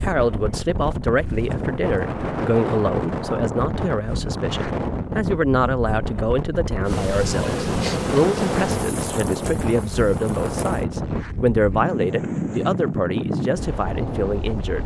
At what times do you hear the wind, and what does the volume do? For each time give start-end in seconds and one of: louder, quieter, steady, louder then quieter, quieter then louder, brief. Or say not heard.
0.0-14.8 steady.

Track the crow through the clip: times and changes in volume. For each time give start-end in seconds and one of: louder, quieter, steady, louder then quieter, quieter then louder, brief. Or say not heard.
not heard.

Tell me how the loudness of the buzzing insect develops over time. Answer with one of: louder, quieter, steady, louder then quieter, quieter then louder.
quieter.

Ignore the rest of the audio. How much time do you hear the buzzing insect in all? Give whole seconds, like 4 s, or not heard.
4 s.